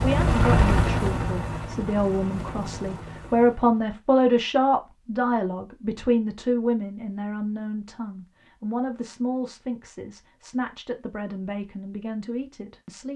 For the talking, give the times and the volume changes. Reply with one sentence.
The talking can be heard from 0.0 to 13.1 s, getting louder then quieter.